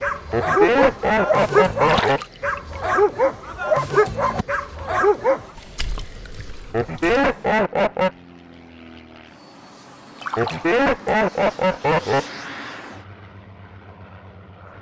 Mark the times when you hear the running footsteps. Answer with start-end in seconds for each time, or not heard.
not heard.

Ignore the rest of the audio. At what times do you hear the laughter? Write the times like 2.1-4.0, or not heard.
0.3-2.2, 6.7-8.1, 10.3-12.2.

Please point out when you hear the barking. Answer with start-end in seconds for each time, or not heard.
0.0-5.5.